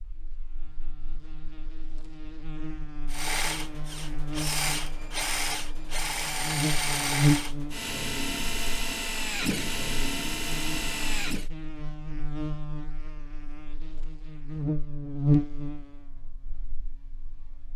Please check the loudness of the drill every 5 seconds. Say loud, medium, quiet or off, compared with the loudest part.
loud, loud, loud, off.